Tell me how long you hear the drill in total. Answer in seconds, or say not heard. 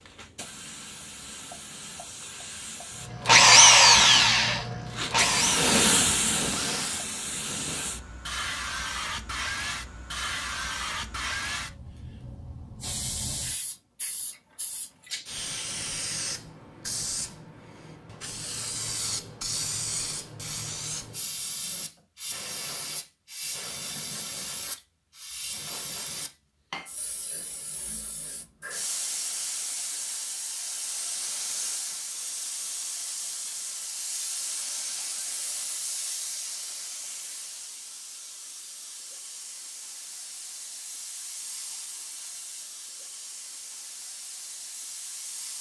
4 s.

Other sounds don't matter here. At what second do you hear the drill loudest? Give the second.
4 s.